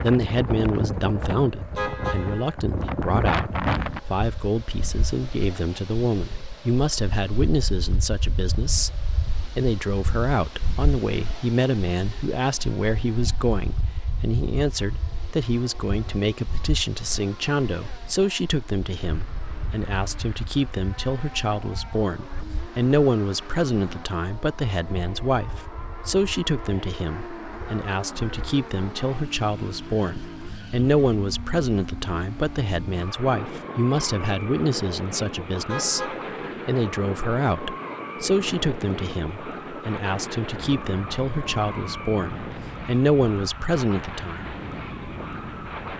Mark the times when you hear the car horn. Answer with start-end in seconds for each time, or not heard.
1.8-2.5, 35.6-36.4.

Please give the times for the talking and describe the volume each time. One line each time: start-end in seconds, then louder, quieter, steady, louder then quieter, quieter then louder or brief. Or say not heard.
0.0-44.5 steady.